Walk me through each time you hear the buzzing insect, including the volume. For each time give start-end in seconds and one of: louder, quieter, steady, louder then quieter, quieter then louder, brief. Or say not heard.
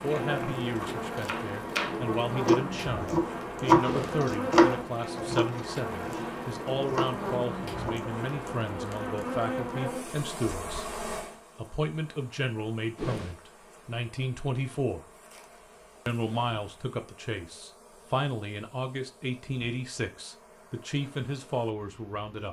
0.0-22.4 quieter.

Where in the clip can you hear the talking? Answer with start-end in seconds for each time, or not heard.
0.0-10.8, 11.6-15.1, 16.1-22.4.